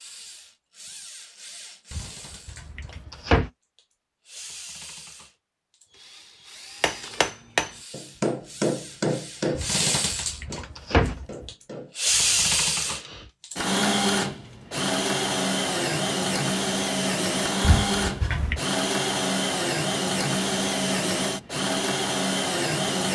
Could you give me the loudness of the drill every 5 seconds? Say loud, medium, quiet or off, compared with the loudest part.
quiet, medium, loud, loud, loud.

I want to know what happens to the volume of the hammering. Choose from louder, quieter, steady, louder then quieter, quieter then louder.
quieter.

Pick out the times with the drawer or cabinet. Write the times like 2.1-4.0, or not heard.
1.9-3.5, 9.6-11.4, 17.6-18.6.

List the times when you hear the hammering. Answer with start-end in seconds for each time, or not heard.
6.8-13.3.